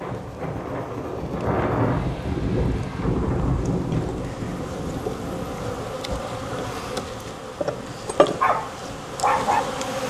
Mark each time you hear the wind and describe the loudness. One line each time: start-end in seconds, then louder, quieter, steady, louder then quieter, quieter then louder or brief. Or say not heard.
0.0-10.0 quieter.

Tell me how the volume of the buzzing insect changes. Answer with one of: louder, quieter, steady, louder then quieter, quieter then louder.
louder.